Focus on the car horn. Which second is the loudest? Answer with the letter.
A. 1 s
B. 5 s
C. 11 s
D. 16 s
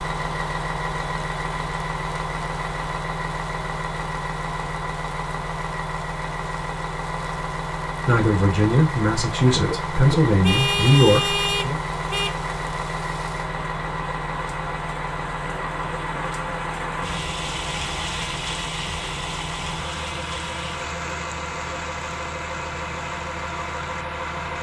C.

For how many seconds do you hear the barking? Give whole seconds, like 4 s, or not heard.
not heard.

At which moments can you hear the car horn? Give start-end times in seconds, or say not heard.
10.4-12.3.